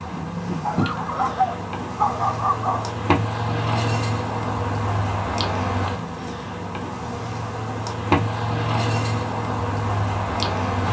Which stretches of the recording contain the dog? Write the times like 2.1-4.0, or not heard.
0.7-3.0.